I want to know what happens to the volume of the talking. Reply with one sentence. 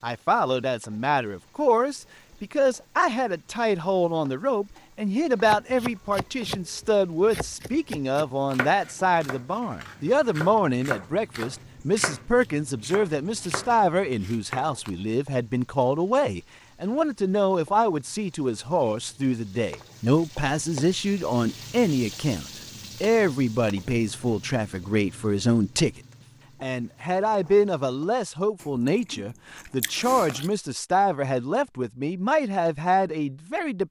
The loudness of the talking stays about the same.